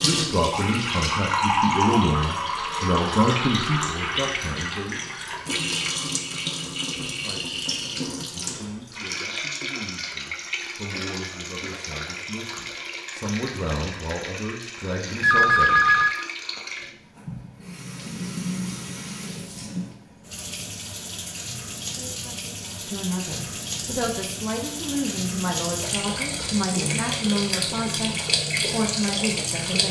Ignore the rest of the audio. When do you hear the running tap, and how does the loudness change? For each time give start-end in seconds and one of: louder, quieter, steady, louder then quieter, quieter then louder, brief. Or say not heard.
0.0-29.8 quieter then louder.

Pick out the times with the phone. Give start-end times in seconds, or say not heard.
15.2-16.1.